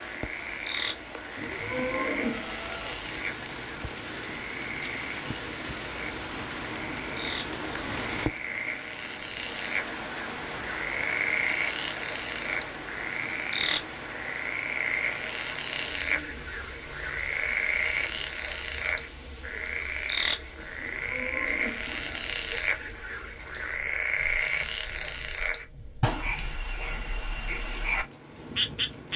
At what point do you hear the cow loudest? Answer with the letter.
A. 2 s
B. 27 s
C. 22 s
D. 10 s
A.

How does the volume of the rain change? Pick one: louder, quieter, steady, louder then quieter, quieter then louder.
quieter.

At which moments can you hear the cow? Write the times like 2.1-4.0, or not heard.
1.4-3.0, 20.8-22.6.